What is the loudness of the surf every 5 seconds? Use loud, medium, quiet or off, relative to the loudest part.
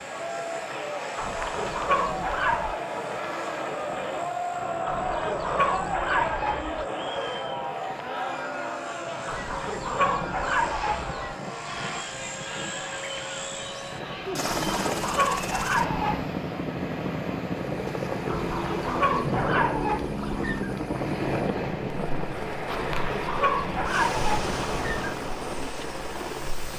medium, medium, medium, loud, loud, medium.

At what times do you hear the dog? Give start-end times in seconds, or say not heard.
1.1-2.8, 4.8-6.8, 9.2-11.2, 14.4-16.2, 18.2-20.8, 22.7-25.1.